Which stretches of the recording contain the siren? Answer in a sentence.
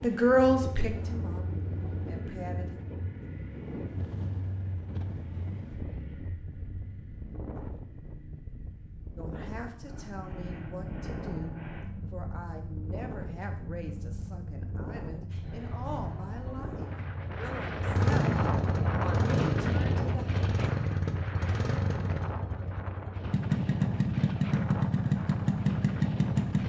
The siren can't be heard in this clip.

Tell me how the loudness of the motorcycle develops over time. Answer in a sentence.
The volume of the motorcycle goes up.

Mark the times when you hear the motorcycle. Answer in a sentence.
You can hear the motorcycle from 0.0 to 26.6 s.